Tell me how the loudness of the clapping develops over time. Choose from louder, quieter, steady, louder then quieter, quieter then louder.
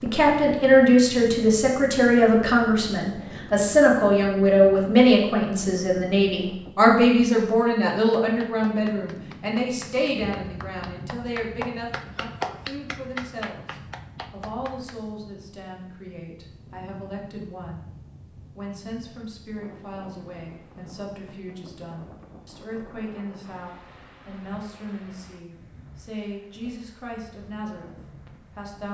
louder then quieter.